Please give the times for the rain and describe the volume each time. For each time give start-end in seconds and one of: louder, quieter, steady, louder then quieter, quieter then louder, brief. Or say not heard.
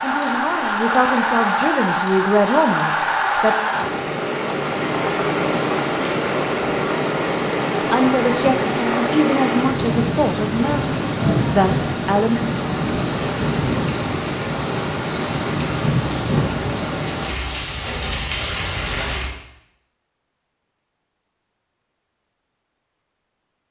0.0-19.3 steady.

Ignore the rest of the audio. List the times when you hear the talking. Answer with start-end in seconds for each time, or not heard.
0.0-3.5, 7.9-12.4.